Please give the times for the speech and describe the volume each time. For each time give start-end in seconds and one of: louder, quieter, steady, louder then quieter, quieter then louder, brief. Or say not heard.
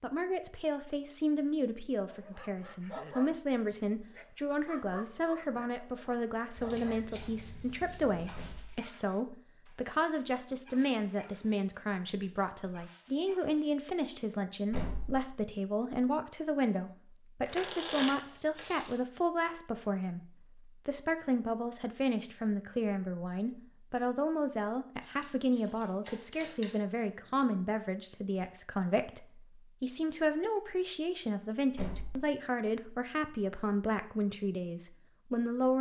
0.0-35.7 steady.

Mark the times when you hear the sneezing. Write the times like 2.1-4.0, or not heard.
not heard.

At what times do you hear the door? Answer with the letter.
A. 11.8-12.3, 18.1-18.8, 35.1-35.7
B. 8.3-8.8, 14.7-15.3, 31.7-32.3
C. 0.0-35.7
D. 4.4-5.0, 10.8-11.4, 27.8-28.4
B.